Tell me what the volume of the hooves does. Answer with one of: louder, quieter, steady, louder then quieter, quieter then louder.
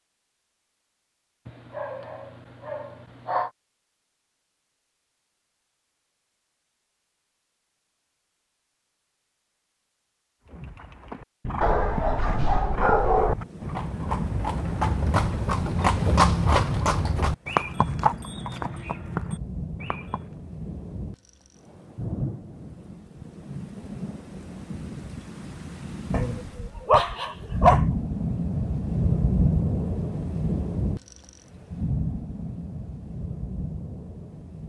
louder then quieter.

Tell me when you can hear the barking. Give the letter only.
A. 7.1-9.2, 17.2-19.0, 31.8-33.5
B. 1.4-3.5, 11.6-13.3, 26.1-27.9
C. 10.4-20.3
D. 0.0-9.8
B.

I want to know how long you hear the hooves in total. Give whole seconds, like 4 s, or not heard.
10 s.